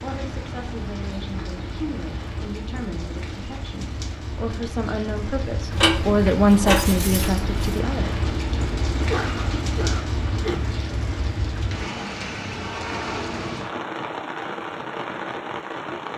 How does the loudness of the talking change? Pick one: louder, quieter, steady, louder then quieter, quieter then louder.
louder.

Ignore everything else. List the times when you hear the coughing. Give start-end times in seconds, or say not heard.
9.1-10.6.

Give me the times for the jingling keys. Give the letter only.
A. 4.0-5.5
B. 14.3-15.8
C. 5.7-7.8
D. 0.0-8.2
C.